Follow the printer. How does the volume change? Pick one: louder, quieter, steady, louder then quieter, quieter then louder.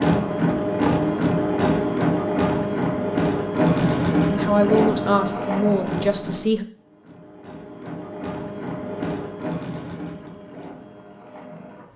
quieter.